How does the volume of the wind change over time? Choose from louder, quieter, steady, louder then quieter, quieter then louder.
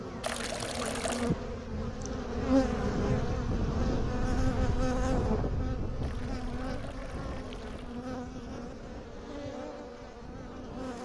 louder then quieter.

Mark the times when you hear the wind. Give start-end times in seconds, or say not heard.
0.0-11.0.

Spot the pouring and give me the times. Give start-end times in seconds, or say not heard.
0.2-1.3, 6.0-8.0.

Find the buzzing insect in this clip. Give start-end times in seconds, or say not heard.
0.0-11.0.